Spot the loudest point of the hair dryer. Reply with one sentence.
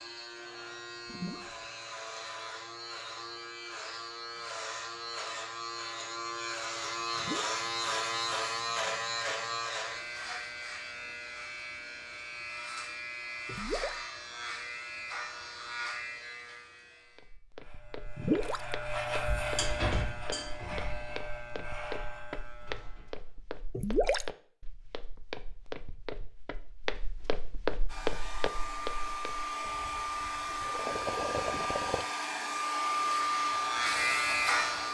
The loudest moment of the hair dryer is at 33 seconds.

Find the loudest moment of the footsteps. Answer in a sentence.
The loudest moment of the footsteps is at 28 seconds.